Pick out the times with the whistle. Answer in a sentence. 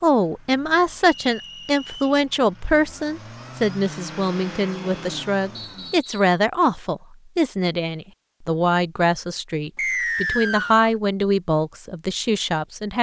You can hear the whistle from 1.1 to 2.2 s, from 5.5 to 6.3 s and from 9.8 to 10.9 s.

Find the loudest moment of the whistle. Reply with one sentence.
The loudest moment of the whistle is at 10 seconds.